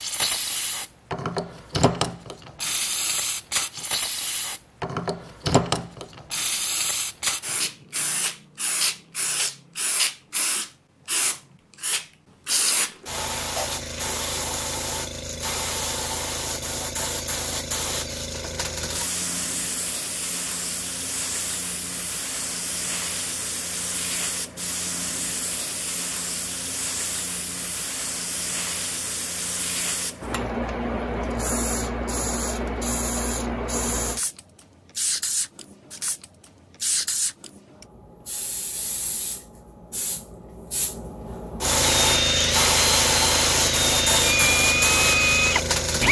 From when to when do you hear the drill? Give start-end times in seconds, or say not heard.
41.8-46.0.